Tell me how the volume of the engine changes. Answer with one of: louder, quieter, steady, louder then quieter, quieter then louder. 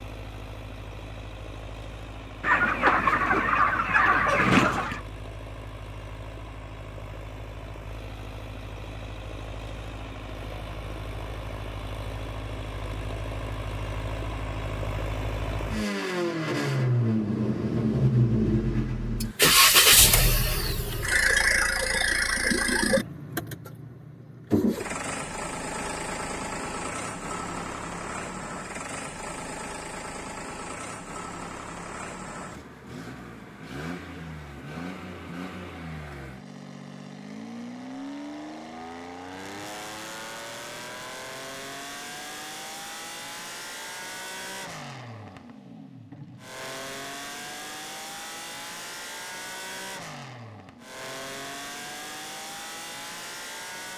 louder then quieter.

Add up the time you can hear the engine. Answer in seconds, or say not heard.
54 s.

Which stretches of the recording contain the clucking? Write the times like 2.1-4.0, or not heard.
2.4-5.0.